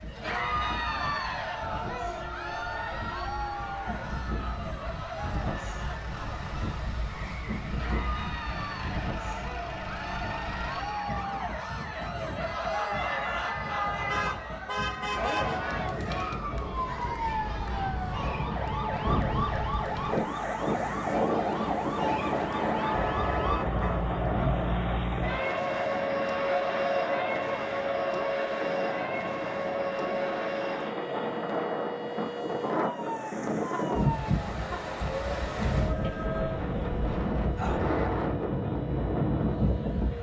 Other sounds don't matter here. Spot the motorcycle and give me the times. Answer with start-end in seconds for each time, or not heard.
not heard.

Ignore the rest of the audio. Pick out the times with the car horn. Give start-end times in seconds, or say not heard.
14.1-15.6, 22.9-24.1.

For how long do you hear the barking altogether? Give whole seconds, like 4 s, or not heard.
not heard.